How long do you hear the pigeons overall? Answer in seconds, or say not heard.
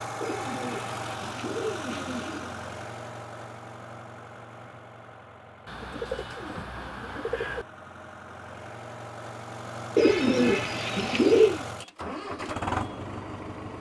6 s.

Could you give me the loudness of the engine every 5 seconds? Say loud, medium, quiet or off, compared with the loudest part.
loud, medium, loud.